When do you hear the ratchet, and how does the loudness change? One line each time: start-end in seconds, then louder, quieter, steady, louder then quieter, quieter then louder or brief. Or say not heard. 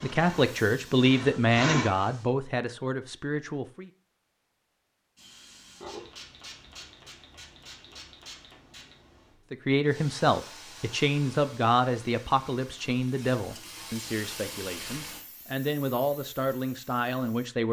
not heard.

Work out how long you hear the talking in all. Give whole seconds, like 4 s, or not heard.
12 s.